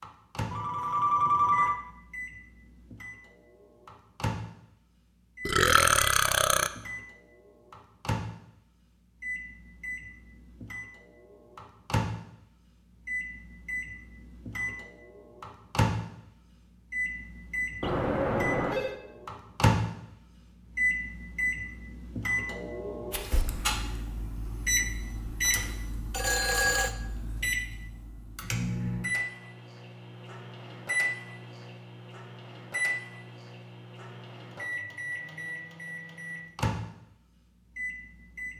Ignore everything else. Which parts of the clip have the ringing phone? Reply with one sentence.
You can hear the ringing phone from 0.5 to 1.8 s, from 17.8 to 18.9 s and from 26.1 to 26.9 s.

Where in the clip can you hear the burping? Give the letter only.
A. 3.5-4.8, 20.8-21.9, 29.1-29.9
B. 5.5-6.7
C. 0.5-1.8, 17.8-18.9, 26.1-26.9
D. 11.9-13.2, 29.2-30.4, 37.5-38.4
B.